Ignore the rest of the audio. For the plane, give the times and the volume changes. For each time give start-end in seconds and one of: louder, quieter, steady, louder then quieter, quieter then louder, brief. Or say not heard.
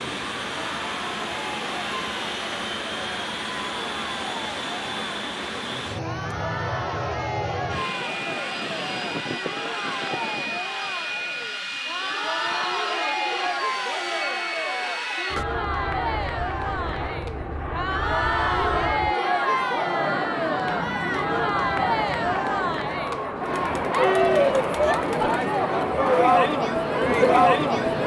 0.0-28.0 steady.